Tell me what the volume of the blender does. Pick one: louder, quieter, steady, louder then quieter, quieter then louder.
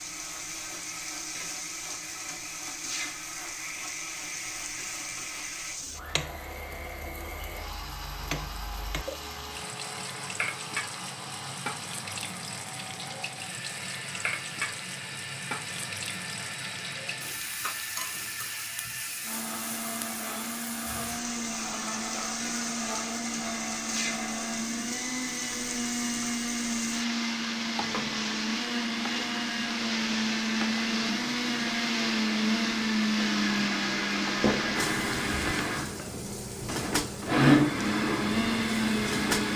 louder.